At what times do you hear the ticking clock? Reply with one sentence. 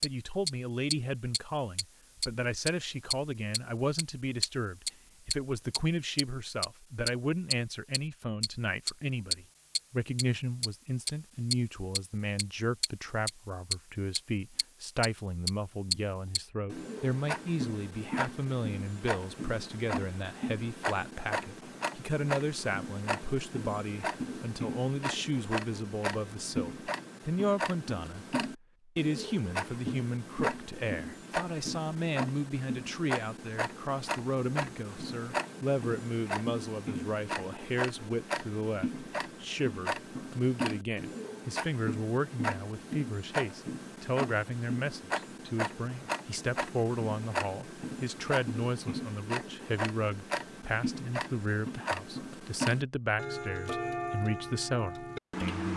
You can hear the ticking clock from 0.0 to 55.7 s.